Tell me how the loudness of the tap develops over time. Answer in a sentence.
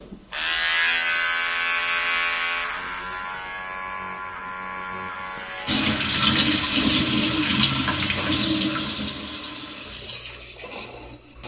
The volume of the tap goes down.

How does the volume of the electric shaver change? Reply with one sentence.
The loudness of the electric shaver goes down.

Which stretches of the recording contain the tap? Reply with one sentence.
You can hear the tap from 5.7 to 11.4 s.